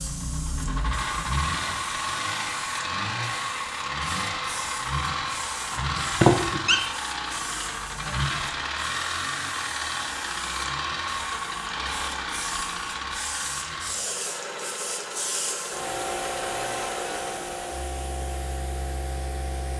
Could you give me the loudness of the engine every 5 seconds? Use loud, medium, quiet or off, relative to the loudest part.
loud, loud, loud, medium.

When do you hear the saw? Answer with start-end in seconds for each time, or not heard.
not heard.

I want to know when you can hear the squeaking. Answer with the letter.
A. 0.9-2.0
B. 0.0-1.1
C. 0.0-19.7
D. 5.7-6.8
D.